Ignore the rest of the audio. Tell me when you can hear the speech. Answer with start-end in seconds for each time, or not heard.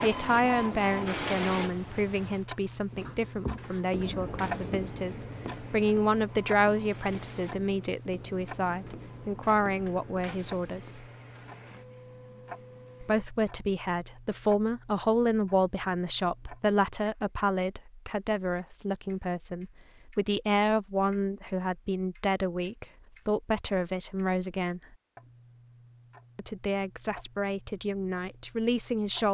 0.0-11.1, 13.0-24.8, 26.4-29.2.